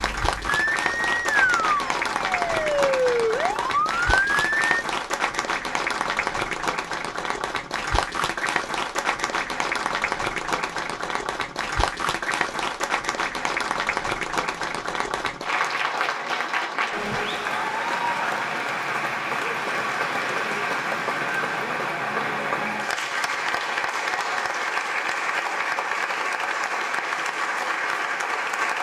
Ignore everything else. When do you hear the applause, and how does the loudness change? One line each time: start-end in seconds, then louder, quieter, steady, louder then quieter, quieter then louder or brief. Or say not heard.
0.0-28.7 steady.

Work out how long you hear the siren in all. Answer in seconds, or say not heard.
5 s.